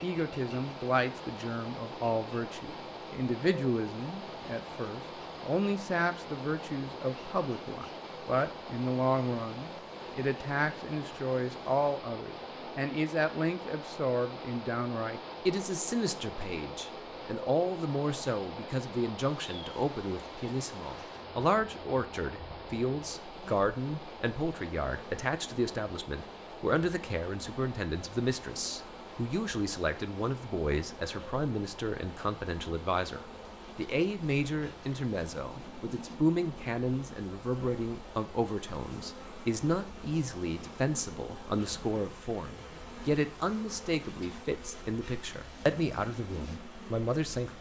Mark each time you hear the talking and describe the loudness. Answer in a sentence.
The talking can be heard from 0.0 to 47.5 s, at a steady volume.